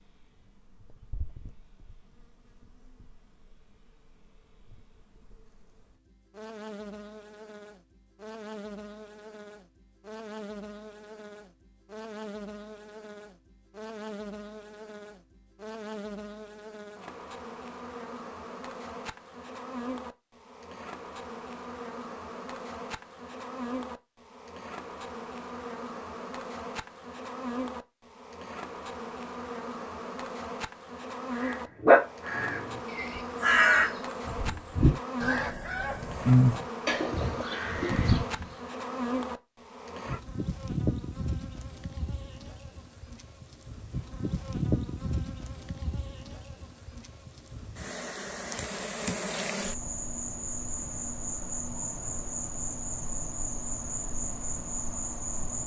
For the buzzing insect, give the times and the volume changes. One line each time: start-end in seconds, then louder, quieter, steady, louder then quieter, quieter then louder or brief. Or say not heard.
0.0-55.6 louder.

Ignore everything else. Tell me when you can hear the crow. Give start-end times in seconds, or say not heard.
31.4-38.5.